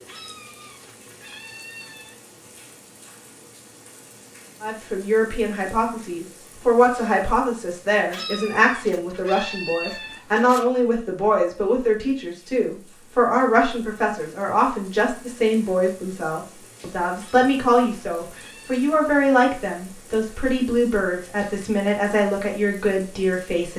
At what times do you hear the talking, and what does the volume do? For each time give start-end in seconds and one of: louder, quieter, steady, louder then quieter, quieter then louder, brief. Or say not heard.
4.6-23.7 steady.